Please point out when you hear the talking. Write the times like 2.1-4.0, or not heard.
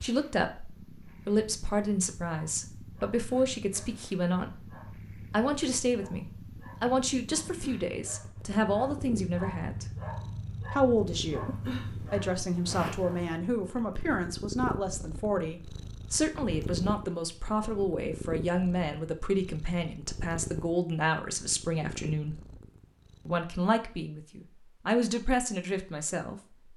0.0-4.7, 5.3-9.8, 10.7-22.4, 23.2-26.7.